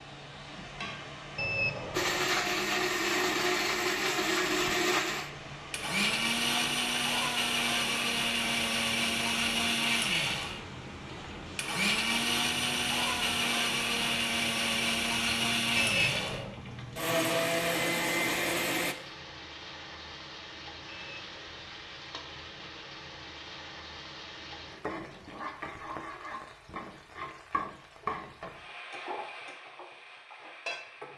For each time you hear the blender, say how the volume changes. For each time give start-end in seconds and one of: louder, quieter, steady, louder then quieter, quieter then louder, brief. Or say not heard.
1.9-18.9 steady.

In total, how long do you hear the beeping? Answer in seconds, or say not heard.
3 s.